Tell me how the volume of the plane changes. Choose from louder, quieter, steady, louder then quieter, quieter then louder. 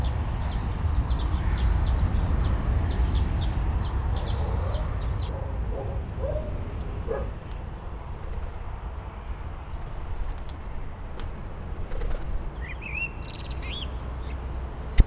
quieter.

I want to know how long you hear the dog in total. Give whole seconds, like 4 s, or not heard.
3 s.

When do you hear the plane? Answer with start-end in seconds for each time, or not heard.
0.0-15.0.